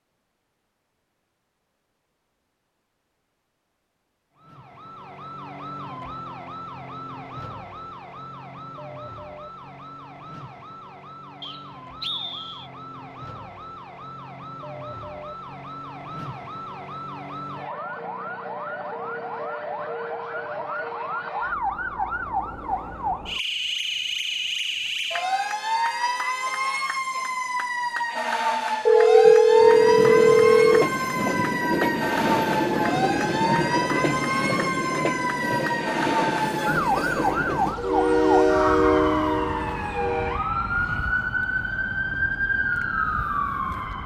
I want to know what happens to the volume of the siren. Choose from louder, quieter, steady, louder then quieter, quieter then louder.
louder.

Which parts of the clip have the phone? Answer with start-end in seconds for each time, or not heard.
28.9-30.9.